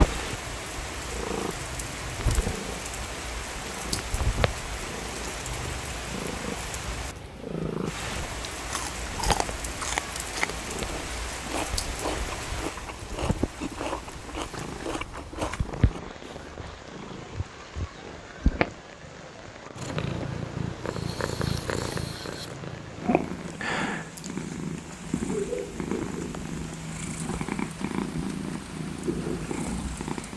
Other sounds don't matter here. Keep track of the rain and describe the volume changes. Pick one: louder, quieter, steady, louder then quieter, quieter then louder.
quieter.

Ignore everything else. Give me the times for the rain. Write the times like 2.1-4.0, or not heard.
0.0-30.3.